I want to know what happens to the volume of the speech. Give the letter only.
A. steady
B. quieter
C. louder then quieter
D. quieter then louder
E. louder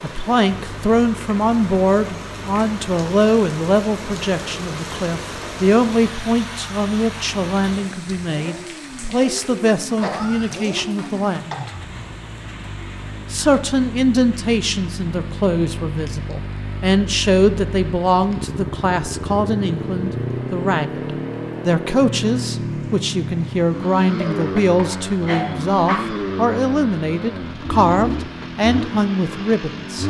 A.